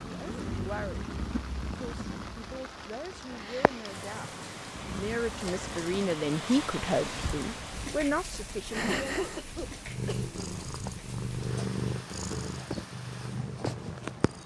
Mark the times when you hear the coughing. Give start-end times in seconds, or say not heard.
8.8-10.2.